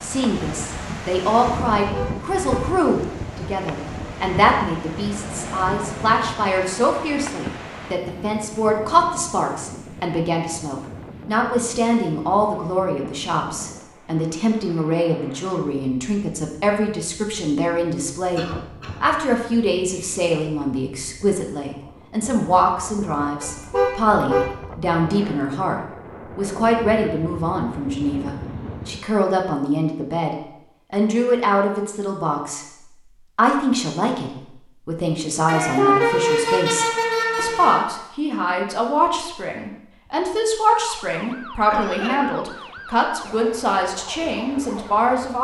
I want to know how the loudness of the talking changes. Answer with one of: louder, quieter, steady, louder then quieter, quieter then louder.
steady.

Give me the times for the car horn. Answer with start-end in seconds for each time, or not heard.
1.8-2.7, 23.4-24.5, 35.5-37.8.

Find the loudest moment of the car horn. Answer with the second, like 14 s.
36 s.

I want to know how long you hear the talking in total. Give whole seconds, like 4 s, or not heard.
45 s.